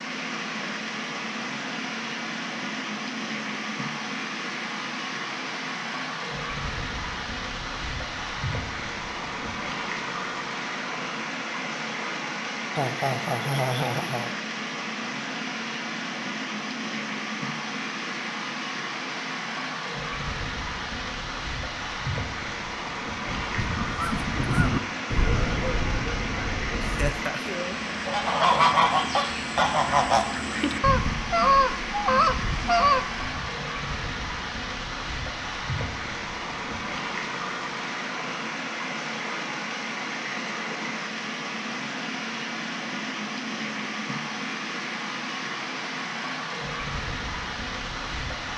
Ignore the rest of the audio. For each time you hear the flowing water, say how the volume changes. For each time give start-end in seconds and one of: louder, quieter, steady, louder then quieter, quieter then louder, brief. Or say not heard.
0.0-48.5 steady.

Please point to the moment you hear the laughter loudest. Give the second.
14 s.